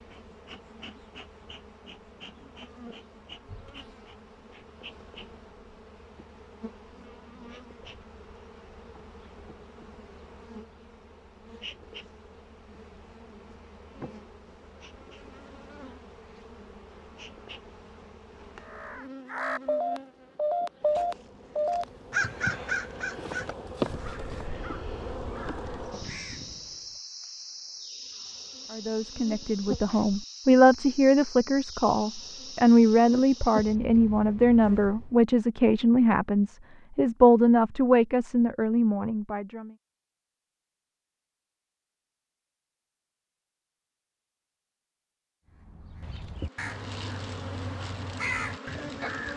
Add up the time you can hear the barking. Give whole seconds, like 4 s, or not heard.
not heard.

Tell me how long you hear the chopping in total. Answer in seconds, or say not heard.
3 s.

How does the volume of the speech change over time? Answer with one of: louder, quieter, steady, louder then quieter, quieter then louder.
steady.